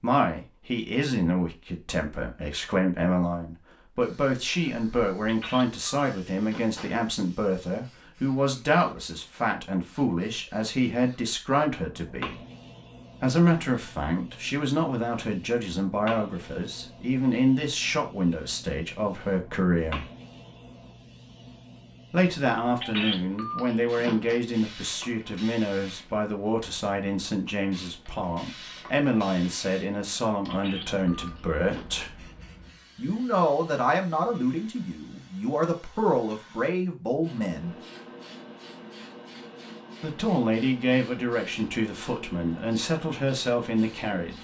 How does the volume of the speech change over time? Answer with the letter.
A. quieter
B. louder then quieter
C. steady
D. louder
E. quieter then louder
C.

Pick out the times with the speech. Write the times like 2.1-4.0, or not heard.
0.0-12.4, 13.2-20.1, 22.1-32.3, 33.0-37.8, 40.0-44.3.